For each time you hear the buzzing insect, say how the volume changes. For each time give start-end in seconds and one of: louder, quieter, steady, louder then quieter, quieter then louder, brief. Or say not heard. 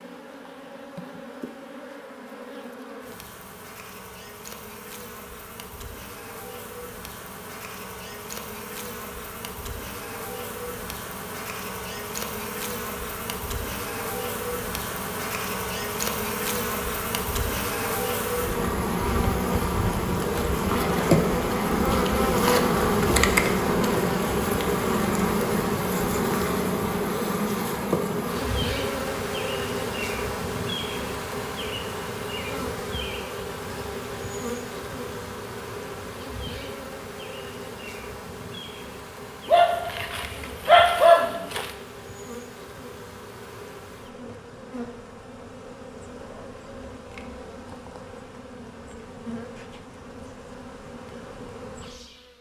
0.0-52.3 louder then quieter.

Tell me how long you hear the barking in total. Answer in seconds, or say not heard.
2 s.